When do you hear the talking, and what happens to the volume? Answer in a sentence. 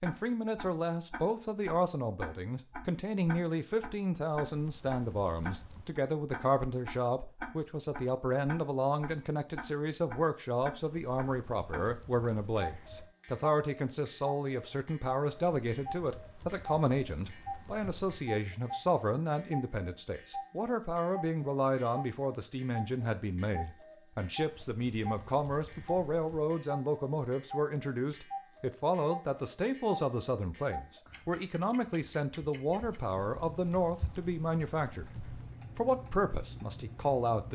The talking can be heard from 0.0 to 35.0 s, at a steady volume; and briefly from 35.8 to 37.5 s.